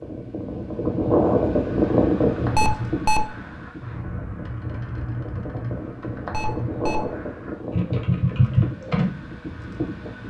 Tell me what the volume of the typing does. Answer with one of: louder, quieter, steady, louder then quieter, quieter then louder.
louder.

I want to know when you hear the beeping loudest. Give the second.
3 s.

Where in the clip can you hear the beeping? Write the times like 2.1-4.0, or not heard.
2.5-3.3, 6.3-7.0.